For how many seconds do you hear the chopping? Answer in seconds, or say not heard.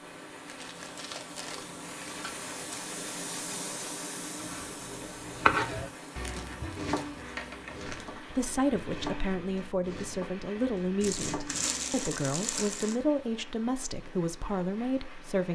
7 s.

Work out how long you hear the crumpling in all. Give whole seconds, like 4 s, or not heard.
6 s.